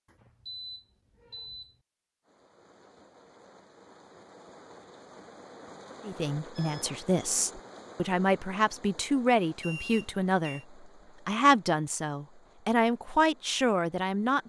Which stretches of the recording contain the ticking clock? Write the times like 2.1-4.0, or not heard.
not heard.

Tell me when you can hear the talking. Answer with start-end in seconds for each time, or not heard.
6.0-14.4.